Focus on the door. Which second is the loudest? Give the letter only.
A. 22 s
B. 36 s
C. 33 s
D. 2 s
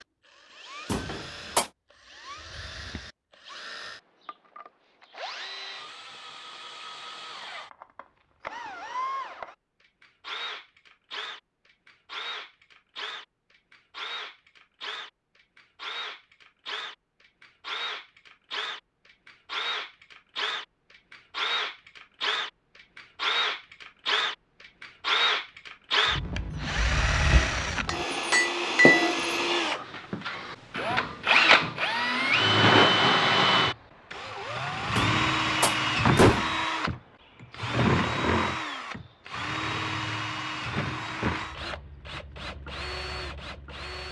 B.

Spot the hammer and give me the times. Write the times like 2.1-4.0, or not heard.
27.9-29.1.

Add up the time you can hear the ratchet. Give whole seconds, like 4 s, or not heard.
not heard.